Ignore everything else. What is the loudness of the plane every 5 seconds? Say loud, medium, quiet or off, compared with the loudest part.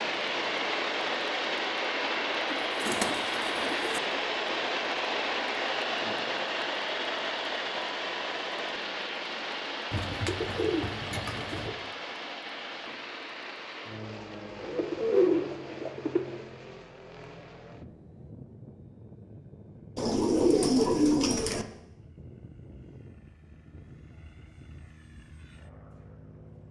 loud, loud, medium, quiet, quiet, quiet.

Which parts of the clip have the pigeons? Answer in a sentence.
The pigeons can be heard from 2.5 to 4.0 s, from 9.9 to 11.7 s, from 14.6 to 16.4 s and from 19.9 to 21.6 s.